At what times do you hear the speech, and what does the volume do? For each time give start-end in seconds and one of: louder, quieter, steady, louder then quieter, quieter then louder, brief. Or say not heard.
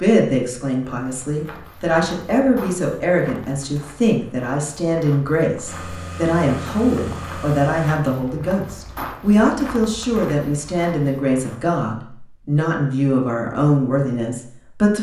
0.0-14.9 steady.